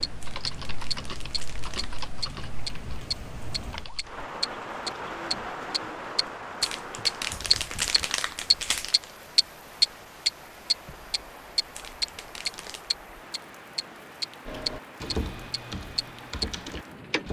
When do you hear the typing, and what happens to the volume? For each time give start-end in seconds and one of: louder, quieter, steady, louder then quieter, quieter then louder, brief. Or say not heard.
0.0-4.2 quieter
14.4-17.2 brief.